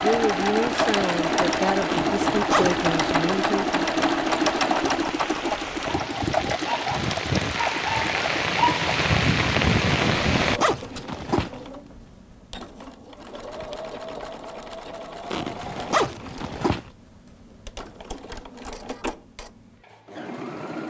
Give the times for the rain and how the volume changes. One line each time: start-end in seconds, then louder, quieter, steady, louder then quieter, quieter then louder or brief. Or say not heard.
0.0-10.6 louder.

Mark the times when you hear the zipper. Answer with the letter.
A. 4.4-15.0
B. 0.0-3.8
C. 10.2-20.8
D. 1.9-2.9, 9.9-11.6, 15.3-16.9
D.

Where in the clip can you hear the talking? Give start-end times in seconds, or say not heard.
0.0-3.8.